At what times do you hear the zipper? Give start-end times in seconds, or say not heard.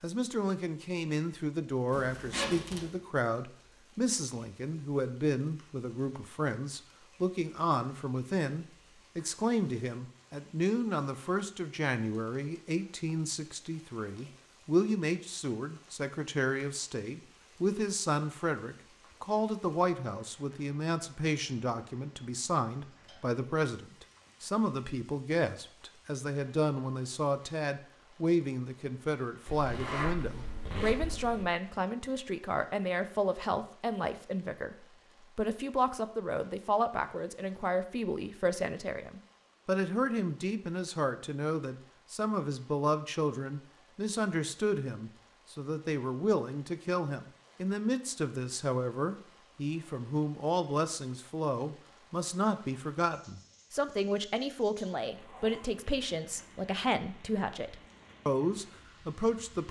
1.9-3.0, 29.4-31.4, 55.0-56.6.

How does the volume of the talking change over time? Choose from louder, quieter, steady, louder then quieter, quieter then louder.
steady.